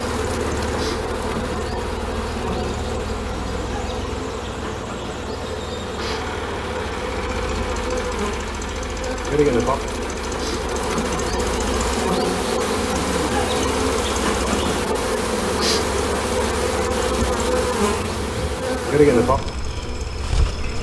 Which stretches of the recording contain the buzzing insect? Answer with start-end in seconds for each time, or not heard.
0.0-20.7.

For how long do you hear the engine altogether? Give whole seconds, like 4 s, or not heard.
21 s.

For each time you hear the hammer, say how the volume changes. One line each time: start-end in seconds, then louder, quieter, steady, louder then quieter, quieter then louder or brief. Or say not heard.
not heard.